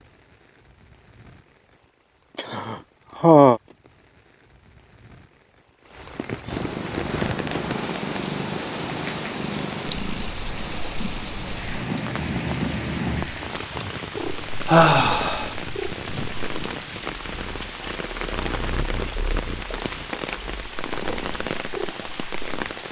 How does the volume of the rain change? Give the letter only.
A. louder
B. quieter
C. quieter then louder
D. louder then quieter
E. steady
A.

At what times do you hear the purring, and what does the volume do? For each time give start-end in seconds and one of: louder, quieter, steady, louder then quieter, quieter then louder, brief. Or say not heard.
6.5-22.6 quieter.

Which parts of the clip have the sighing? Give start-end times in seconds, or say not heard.
2.4-3.6, 14.7-15.6.